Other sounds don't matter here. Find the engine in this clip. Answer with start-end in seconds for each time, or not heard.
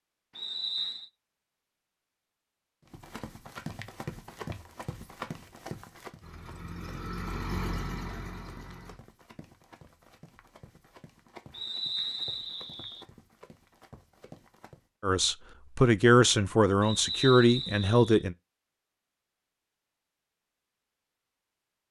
6.2-9.0.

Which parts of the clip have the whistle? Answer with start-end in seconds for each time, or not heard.
0.3-1.1, 11.5-13.1, 16.8-18.2.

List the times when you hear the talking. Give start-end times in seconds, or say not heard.
15.0-18.4.